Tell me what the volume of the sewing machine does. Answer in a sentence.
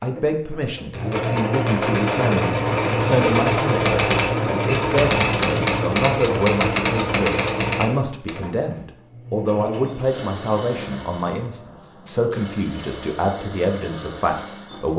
The volume of the sewing machine goes down.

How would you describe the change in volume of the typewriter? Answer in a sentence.
The volume of the typewriter goes up.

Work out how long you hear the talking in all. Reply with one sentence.
You can hear the talking for 15 seconds altogether.